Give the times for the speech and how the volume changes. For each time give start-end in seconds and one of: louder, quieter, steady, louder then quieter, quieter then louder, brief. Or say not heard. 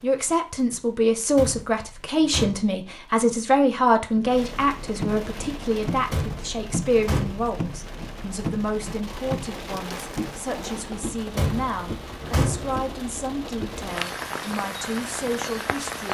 0.0-16.0 quieter.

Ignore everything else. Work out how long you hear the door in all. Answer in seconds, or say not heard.
5 s.